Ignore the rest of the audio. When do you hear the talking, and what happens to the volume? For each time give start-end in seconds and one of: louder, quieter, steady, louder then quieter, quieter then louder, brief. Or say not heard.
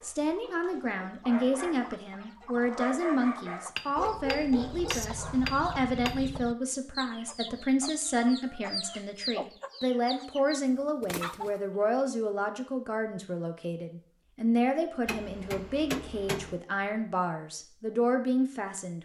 0.0-19.0 steady.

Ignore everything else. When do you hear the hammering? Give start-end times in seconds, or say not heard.
3.8-6.2, 15.1-16.6.